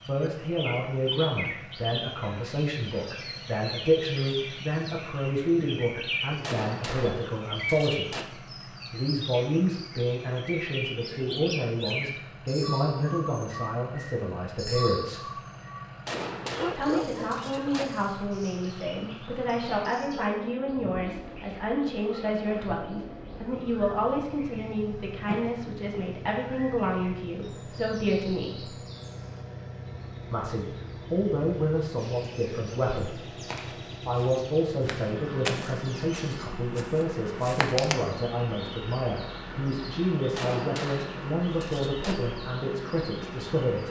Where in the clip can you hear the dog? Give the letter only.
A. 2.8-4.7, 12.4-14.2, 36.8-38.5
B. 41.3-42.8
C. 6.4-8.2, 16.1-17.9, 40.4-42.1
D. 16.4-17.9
D.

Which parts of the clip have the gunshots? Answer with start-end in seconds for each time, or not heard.
6.4-8.2, 16.1-17.9, 40.4-42.1.